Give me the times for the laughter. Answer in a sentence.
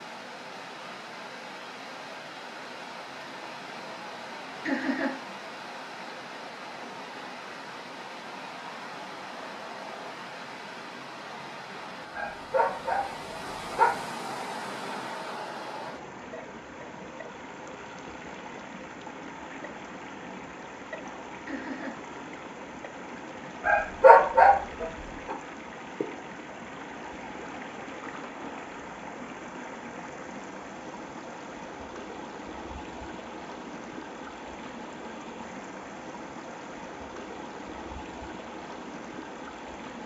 The laughter can be heard from 4.7 to 5.2 s and from 21.4 to 22.0 s.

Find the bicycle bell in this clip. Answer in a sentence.
The bicycle bell can't be heard in this clip.